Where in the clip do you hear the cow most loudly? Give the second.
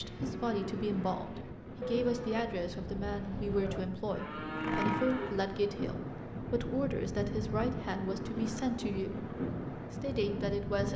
5 s.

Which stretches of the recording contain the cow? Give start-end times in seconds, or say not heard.
0.0-5.5.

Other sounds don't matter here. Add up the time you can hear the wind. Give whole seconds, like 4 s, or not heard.
11 s.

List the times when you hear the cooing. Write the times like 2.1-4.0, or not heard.
not heard.